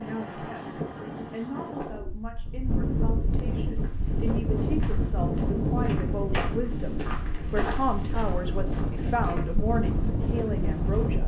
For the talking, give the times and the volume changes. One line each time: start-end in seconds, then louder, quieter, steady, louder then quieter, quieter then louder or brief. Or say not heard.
0.0-11.2 louder.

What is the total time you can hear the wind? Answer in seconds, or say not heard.
11 s.